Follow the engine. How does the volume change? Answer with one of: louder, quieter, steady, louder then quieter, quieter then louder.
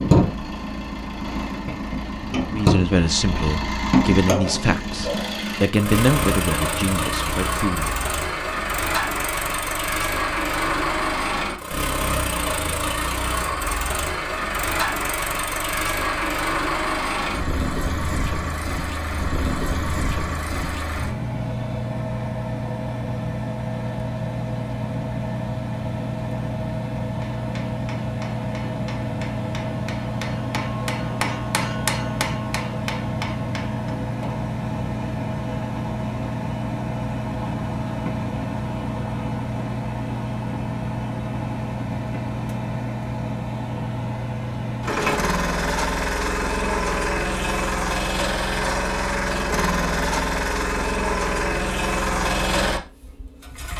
steady.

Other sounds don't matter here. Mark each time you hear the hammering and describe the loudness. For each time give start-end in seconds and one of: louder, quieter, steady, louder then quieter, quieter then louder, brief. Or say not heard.
27.2-33.9 louder then quieter.